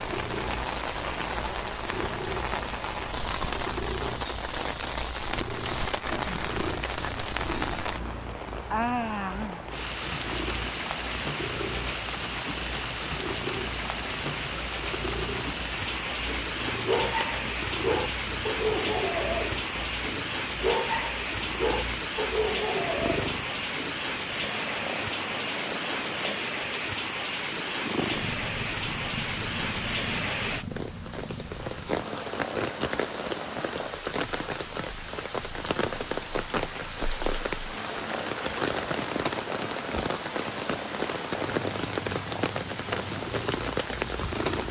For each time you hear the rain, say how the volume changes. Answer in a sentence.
The rain can be heard from 0.0 to 44.6 s, at a steady volume.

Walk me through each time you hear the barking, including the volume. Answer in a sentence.
The barking can be heard from 16.2 to 24.0 s, at a steady volume.